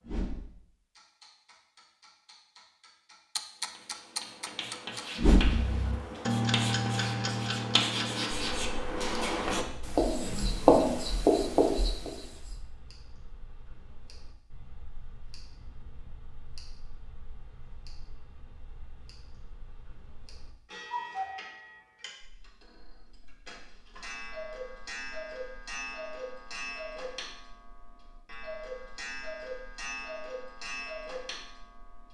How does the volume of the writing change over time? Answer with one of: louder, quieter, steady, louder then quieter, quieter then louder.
louder.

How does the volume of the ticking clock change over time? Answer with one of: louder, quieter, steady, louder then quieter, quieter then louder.
quieter then louder.